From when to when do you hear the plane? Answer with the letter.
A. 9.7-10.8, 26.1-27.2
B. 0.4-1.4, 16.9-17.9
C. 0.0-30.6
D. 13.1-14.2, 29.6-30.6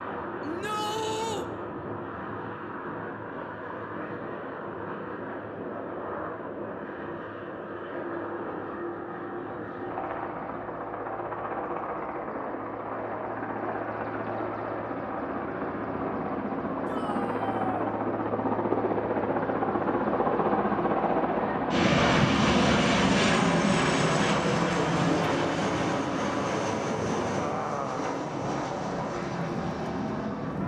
C.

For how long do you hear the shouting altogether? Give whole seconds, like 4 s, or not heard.
2 s.